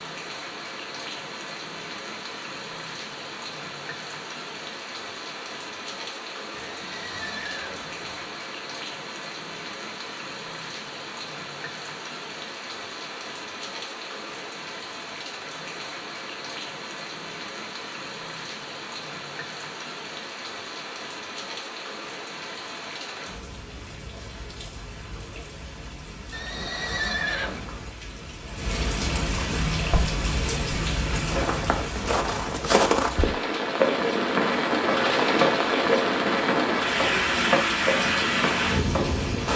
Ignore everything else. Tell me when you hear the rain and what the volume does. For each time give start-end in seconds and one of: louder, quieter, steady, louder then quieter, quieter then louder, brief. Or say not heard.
0.0-39.5 louder.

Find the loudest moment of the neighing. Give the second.
27 s.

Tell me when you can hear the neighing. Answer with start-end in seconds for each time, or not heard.
6.5-8.3, 26.3-27.9.